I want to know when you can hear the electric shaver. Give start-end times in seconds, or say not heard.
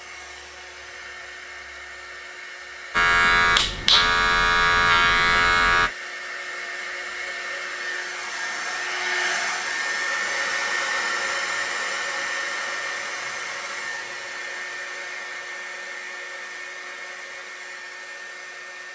2.9-5.9.